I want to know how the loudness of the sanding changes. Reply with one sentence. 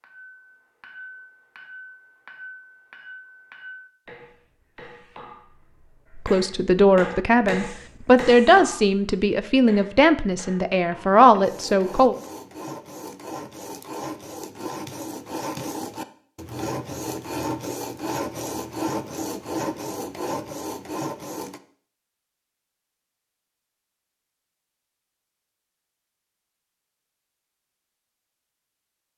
The volume of the sanding goes up.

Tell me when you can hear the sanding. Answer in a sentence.
You can hear the sanding from 11.3 to 21.6 s.